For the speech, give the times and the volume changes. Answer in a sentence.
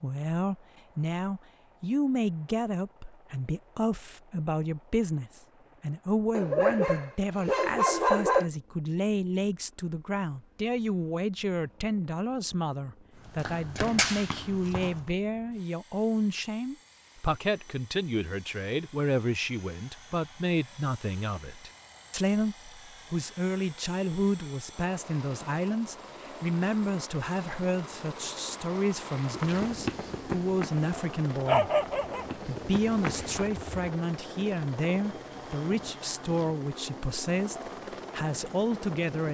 The speech can be heard from 0.0 to 31.7 s, at a steady volume; and from 32.4 to 39.3 s, at a steady volume.